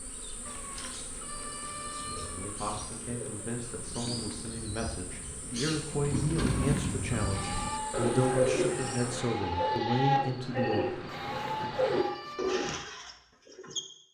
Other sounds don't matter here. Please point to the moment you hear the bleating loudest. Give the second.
10 s.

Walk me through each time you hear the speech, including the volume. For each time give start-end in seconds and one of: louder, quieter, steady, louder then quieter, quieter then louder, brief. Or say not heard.
2.3-11.8 louder.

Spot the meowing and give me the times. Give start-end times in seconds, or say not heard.
0.5-2.5, 6.5-7.8, 11.1-12.6.